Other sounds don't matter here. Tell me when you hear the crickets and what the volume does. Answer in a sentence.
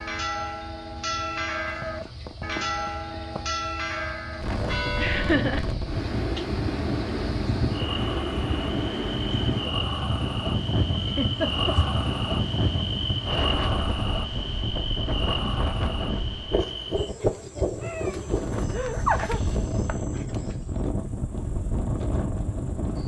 The crickets can be heard from 0.0 to 23.0 s, getting louder then quieter.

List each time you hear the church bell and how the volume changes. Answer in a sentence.
You can hear the church bell from 0.0 to 5.4 s, at a steady volume.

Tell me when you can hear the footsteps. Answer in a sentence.
The footsteps can't be heard in this clip.